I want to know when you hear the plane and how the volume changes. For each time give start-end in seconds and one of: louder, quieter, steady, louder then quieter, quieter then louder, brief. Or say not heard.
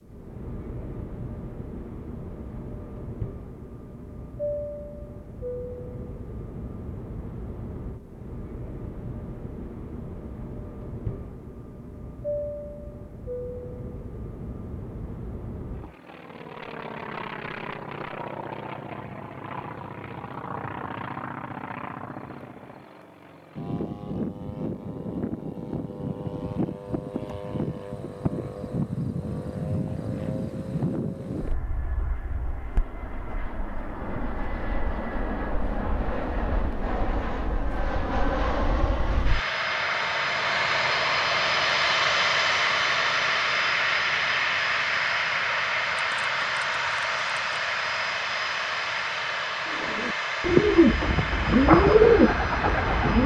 0.0-53.2 louder.